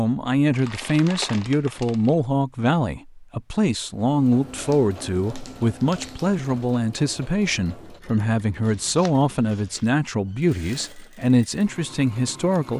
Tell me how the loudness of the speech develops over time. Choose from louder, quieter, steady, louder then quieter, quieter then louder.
steady.